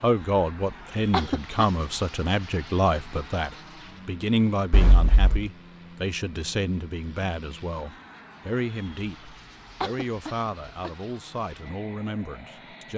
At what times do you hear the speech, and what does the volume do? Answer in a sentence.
The speech can be heard from 0.0 to 12.9 s, getting quieter.